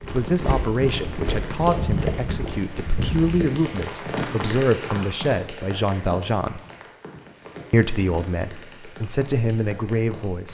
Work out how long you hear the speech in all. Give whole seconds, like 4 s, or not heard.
9 s.